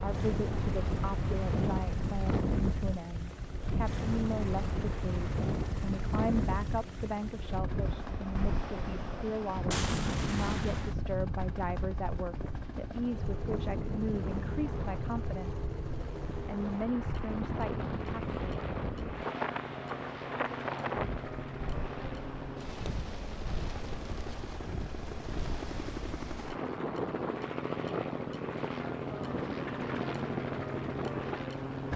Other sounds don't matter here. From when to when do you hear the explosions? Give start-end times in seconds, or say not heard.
9.7-10.9.